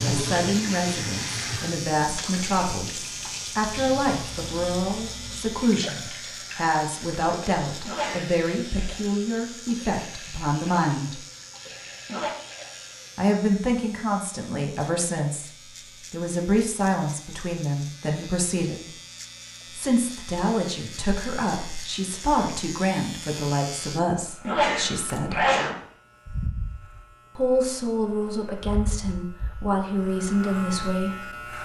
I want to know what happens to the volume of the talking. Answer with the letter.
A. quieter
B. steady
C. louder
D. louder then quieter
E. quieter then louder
B.